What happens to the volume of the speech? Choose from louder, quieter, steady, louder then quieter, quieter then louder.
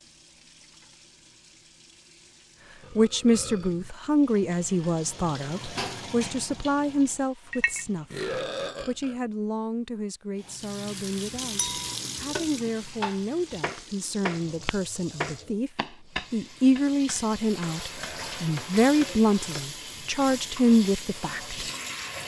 quieter then louder.